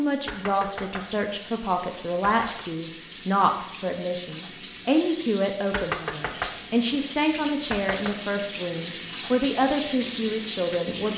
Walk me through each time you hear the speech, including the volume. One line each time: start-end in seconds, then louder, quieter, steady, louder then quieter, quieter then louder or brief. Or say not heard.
0.0-11.1 steady.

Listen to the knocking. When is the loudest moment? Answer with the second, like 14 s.
6 s.